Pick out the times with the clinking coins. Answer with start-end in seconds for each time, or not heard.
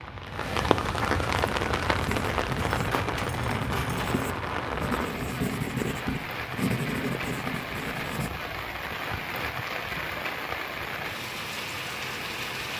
2.7-4.2.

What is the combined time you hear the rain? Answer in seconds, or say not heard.
13 s.